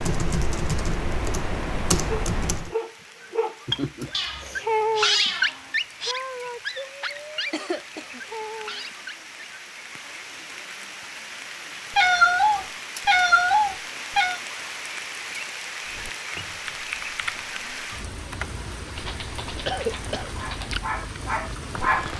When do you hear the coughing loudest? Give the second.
20 s.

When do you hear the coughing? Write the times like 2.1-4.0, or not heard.
3.6-4.7, 7.5-8.2, 19.6-20.3.